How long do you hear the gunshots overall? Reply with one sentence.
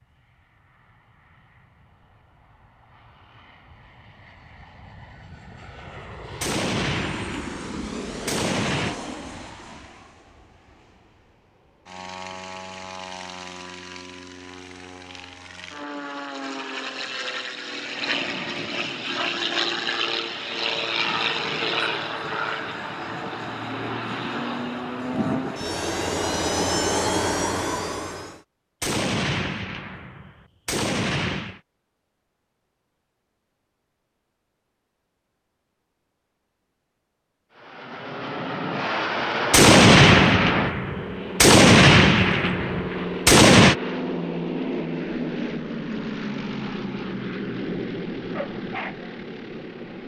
You can hear the gunshots for 10 seconds altogether.